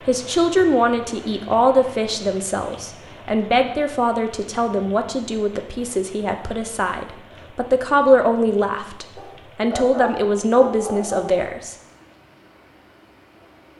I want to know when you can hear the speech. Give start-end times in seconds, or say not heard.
0.1-11.8.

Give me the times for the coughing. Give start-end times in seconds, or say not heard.
not heard.